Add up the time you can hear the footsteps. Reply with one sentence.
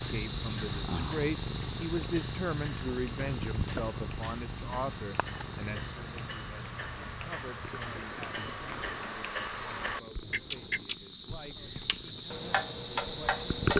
The footsteps can't be heard in this clip.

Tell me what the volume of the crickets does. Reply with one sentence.
The volume of the crickets goes down, then up.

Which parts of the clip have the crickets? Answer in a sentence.
The crickets can be heard from 0.0 to 13.7 s.